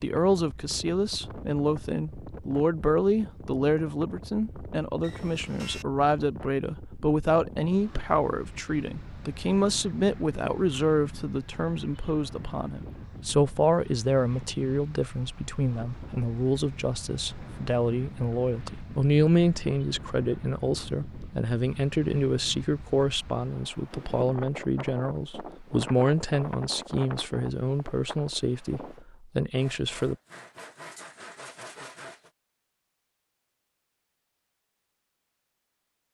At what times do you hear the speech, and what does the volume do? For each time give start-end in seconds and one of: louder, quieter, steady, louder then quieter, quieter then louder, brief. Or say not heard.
0.0-30.1 steady.